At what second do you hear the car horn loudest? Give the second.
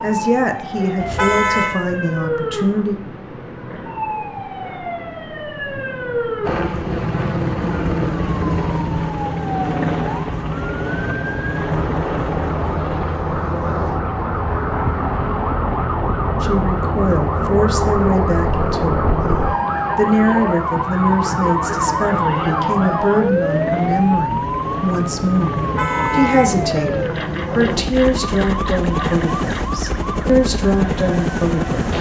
1 s.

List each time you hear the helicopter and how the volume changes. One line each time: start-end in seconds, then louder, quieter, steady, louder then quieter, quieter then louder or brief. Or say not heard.
6.4-31.9 quieter then louder.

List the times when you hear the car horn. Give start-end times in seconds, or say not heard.
1.0-1.8, 25.6-26.6.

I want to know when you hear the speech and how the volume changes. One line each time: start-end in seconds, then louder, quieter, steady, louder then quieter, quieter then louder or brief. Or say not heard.
0.0-3.0 brief
16.4-31.9 steady.